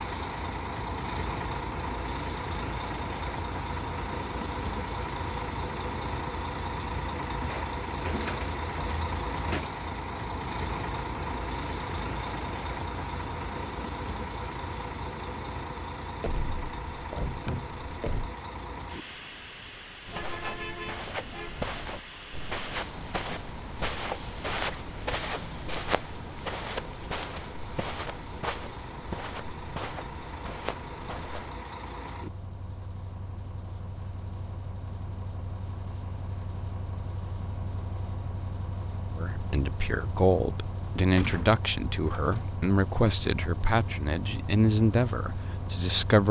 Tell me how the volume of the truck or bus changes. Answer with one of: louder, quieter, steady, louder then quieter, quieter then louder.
quieter.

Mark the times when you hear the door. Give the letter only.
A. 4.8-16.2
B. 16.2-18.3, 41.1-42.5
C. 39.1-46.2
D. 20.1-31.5
B.